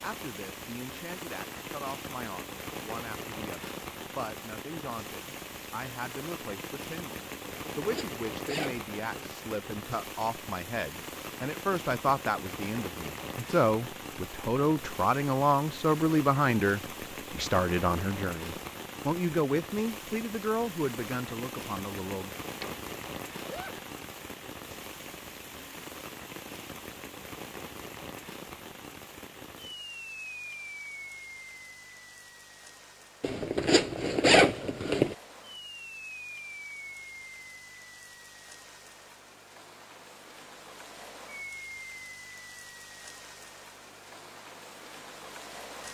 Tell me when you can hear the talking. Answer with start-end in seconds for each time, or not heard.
0.0-22.3.